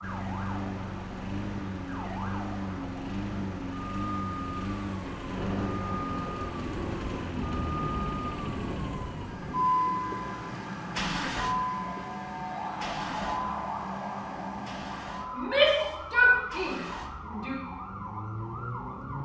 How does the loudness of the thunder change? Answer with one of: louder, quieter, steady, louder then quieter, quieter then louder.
steady.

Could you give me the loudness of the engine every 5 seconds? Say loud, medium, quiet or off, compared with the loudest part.
loud, loud, loud, medium.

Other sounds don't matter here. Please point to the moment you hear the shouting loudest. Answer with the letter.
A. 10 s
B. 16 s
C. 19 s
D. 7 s
B.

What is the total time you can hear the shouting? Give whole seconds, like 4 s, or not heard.
2 s.